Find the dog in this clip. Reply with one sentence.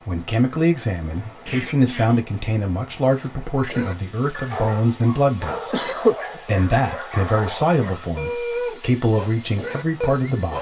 You can hear the dog from 3.5 to 10.5 s.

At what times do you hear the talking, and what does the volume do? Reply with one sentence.
You can hear the talking from 0.1 to 10.5 s, at a steady volume.